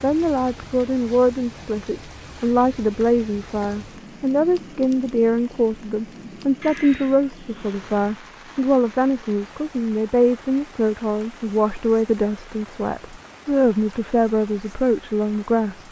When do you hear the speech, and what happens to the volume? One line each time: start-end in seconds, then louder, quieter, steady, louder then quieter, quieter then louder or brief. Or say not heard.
0.0-15.8 steady.